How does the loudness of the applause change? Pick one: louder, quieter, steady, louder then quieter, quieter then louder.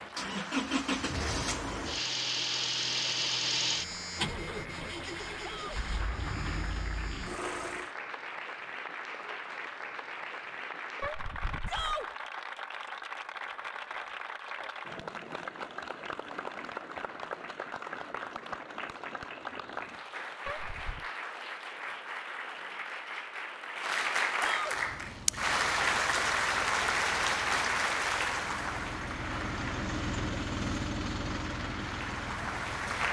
louder.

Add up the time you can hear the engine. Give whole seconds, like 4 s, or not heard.
16 s.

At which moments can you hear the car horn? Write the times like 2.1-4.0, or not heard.
11.0-12.0, 20.4-21.1.